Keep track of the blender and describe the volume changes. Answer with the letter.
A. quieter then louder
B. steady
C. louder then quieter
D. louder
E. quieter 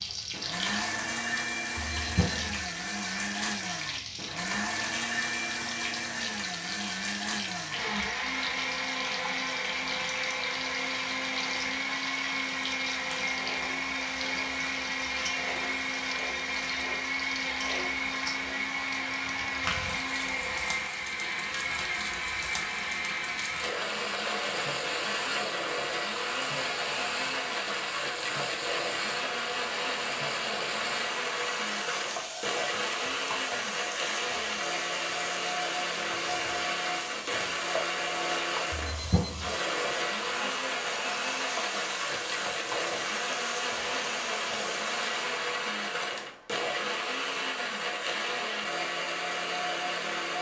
B.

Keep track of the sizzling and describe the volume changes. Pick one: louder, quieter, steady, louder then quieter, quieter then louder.
steady.